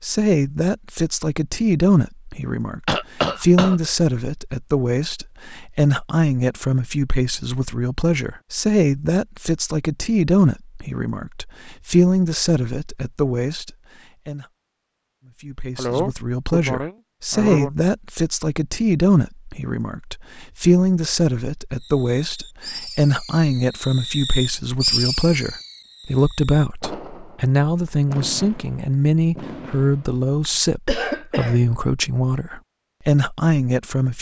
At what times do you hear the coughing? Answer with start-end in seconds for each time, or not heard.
2.9-3.8, 15.8-17.7, 30.4-31.6.